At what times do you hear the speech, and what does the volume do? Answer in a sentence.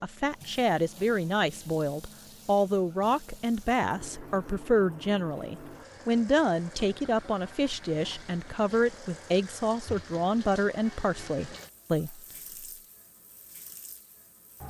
You can hear the speech from 0.0 to 12.2 s, at a steady volume.